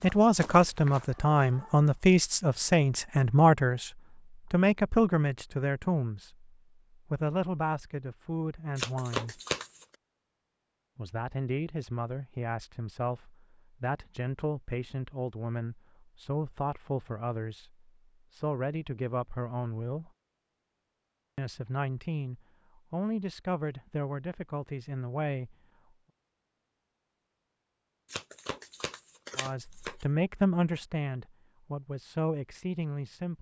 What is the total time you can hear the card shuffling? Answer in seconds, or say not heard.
3 s.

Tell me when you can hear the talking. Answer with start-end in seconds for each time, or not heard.
0.0-9.4, 10.9-20.1, 21.4-25.6, 29.4-33.3.